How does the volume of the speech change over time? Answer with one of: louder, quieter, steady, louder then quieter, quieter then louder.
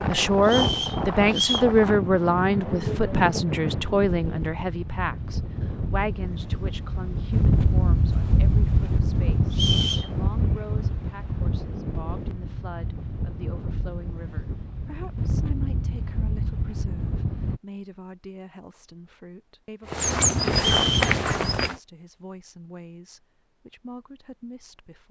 quieter.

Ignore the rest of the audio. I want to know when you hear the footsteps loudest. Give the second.
20 s.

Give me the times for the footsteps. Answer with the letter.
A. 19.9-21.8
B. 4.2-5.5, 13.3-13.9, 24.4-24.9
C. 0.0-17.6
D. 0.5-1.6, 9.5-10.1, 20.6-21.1
A.